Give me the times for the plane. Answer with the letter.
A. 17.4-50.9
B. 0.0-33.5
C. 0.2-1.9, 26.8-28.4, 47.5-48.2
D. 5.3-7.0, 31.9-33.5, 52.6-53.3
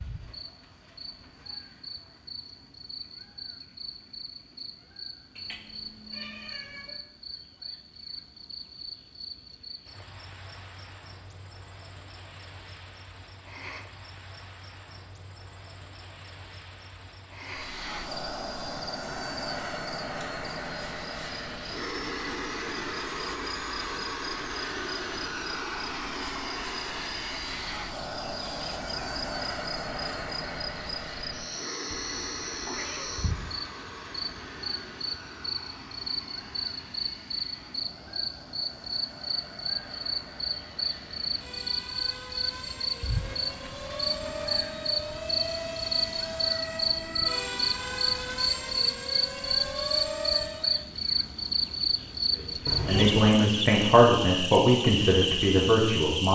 A.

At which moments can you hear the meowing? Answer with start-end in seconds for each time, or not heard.
5.3-7.0, 31.9-33.5, 52.6-53.3.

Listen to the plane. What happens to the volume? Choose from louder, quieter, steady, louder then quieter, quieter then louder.
quieter then louder.